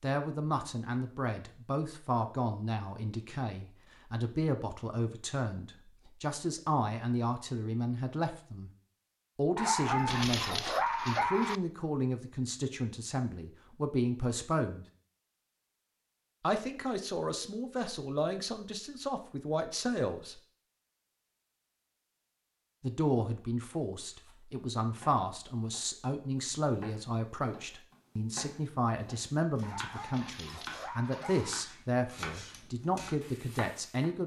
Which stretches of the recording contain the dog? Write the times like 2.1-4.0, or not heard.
9.6-11.6, 29.6-31.6.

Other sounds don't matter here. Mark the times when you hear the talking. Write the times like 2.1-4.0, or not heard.
0.0-8.7, 9.3-14.8, 16.4-20.4, 22.8-34.2.